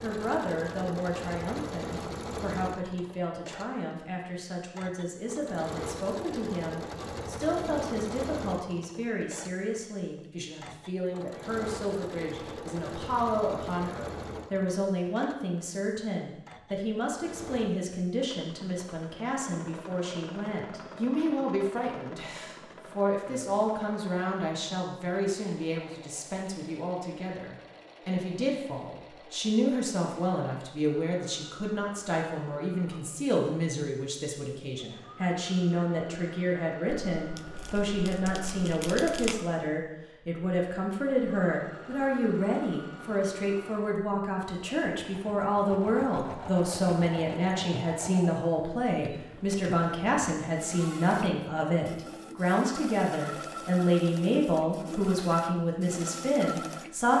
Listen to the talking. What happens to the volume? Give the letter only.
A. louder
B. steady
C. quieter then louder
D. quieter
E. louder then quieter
A.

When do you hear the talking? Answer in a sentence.
The talking can be heard from 0.0 to 57.1 s.